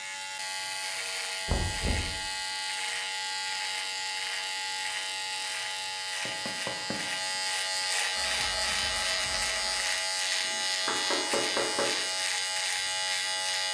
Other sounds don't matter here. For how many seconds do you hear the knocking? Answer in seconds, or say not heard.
3 s.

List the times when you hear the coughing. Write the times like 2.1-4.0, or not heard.
not heard.